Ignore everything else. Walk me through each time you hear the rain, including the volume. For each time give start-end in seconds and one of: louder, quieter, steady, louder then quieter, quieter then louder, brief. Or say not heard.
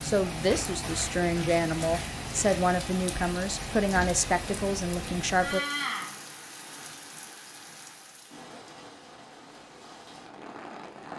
0.0-11.1 quieter.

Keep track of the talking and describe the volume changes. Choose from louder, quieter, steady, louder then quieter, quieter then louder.
steady.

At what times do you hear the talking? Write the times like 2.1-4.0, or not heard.
0.0-5.6.